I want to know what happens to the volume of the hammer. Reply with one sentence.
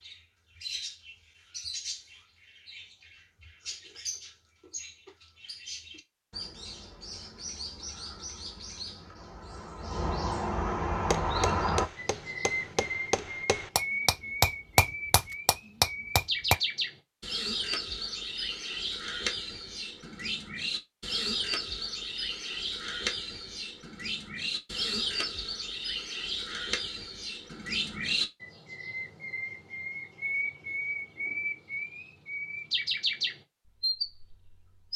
The volume of the hammer goes up.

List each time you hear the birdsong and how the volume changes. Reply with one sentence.
You can hear the birdsong from 0.0 to 34.9 s, getting louder.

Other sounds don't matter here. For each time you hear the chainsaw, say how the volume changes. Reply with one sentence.
You can't hear the chainsaw here.